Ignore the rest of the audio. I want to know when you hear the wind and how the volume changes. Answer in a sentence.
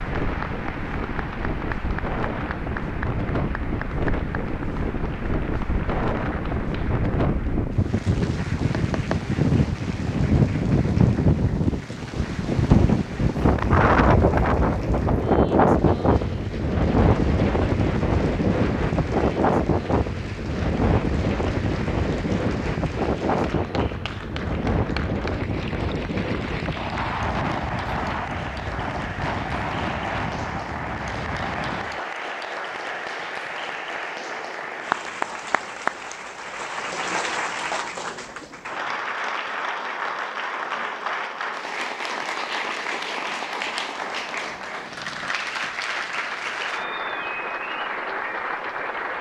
The wind can be heard from 0.0 to 32.0 s, getting louder then quieter.